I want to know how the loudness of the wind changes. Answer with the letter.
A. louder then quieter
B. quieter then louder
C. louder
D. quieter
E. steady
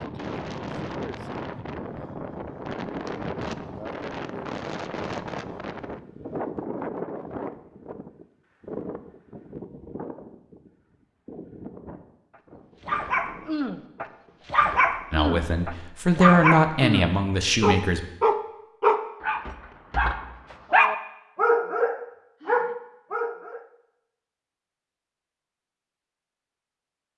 D.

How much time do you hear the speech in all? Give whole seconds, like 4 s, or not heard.
3 s.